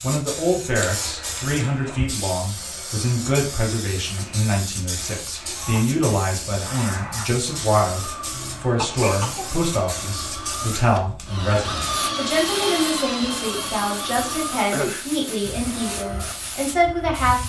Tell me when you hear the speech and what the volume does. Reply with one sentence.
The speech can be heard from 0.0 to 17.4 s, at a steady volume.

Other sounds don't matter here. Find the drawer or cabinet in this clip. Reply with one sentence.
The drawer or cabinet can't be heard in this clip.